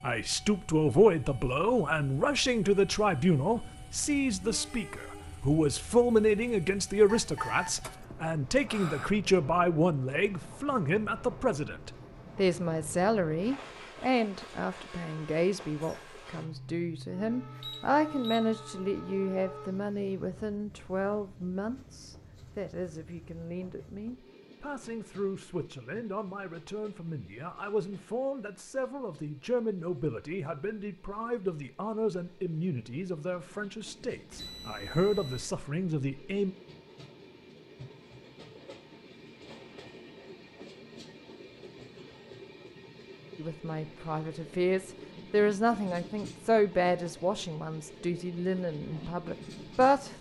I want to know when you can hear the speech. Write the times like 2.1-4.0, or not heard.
0.0-36.5, 43.4-50.1.